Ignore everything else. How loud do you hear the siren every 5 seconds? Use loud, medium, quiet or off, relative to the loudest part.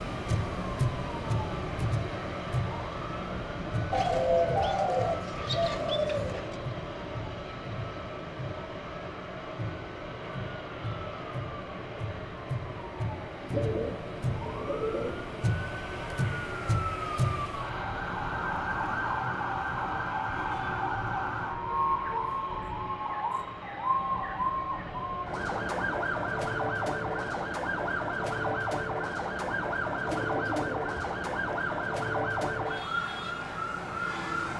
loud, medium, medium, loud, loud, loud, loud.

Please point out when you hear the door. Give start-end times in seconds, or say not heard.
not heard.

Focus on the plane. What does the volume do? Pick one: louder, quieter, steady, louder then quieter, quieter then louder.
quieter.